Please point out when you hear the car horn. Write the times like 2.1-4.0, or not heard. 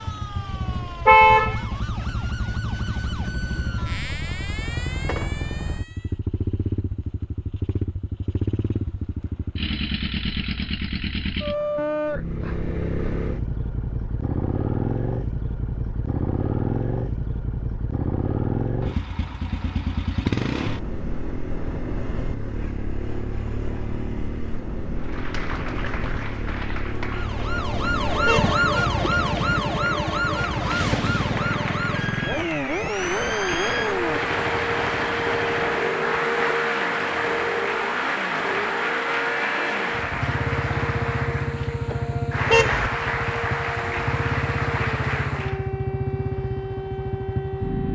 1.1-2.0, 28.2-28.6, 42.5-42.9.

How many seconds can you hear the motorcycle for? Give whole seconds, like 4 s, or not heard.
48 s.